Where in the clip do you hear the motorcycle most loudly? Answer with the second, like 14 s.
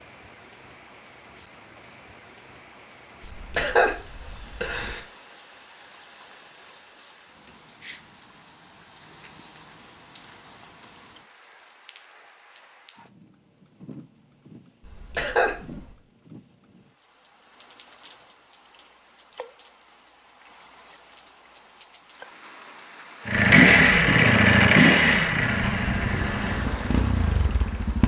24 s.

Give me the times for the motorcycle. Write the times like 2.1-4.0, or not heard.
23.2-28.0.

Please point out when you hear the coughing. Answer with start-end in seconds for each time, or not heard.
3.2-5.0, 14.8-15.9.